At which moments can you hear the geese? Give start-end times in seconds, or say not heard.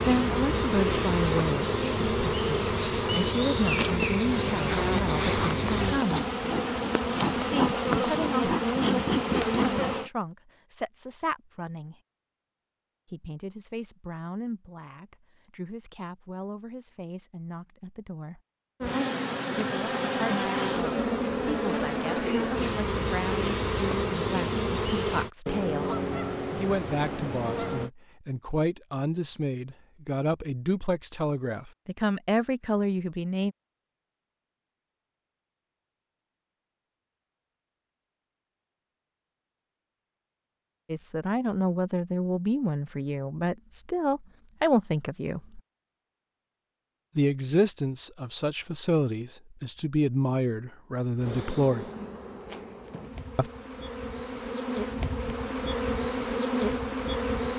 25.4-27.9.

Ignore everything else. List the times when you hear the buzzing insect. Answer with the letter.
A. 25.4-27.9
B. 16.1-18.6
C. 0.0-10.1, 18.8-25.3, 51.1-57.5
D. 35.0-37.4
C.